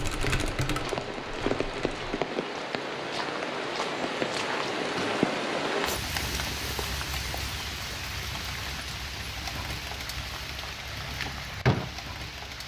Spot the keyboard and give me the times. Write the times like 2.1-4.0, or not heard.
0.0-2.1.